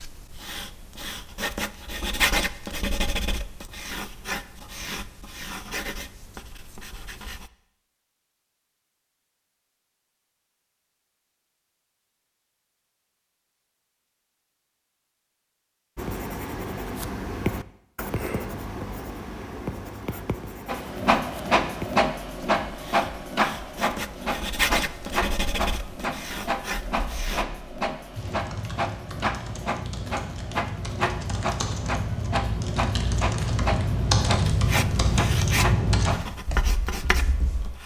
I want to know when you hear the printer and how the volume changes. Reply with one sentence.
The printer can be heard from 20.6 to 36.3 s, getting quieter.